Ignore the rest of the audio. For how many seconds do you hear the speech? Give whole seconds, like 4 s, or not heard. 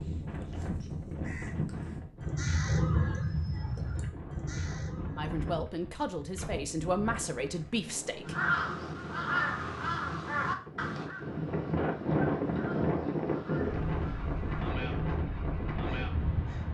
3 s.